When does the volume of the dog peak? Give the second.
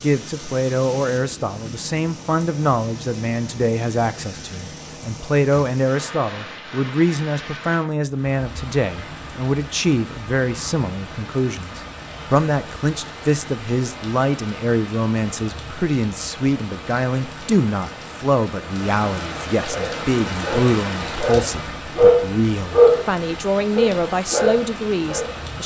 23 s.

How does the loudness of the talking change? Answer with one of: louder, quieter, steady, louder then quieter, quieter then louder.
steady.